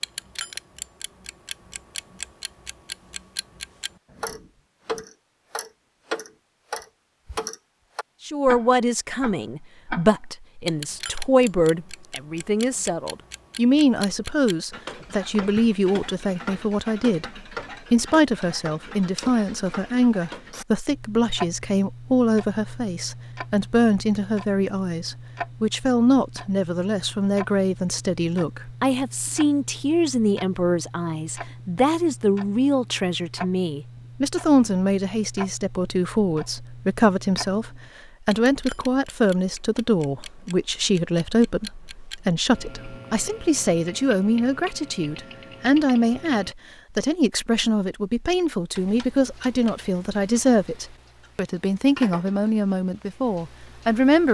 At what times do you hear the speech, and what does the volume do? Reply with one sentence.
The speech can be heard from 8.2 to 54.2 s, at a steady volume.